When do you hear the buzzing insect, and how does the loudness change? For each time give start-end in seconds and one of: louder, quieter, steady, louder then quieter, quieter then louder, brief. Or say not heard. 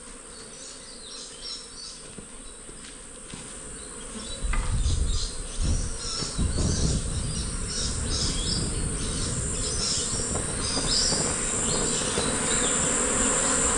0.0-13.7 louder.